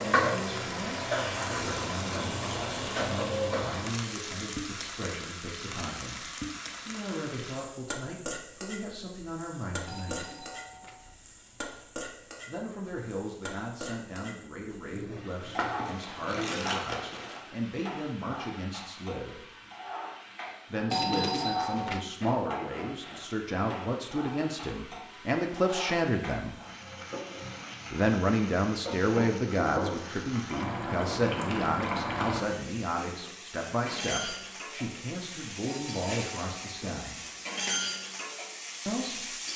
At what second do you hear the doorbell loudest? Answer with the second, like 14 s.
21 s.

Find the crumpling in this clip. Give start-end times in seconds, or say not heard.
15.6-17.4.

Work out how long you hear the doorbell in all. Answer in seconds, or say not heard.
4 s.